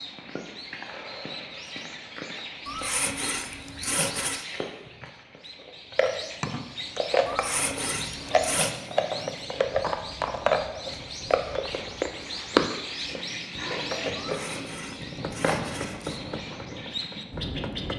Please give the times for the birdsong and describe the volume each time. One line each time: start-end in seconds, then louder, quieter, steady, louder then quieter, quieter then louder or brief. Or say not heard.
0.0-17.9 louder then quieter.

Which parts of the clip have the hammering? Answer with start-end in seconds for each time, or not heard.
15.1-17.9.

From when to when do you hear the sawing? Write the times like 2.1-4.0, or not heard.
2.6-4.5, 7.2-8.8, 14.2-16.2.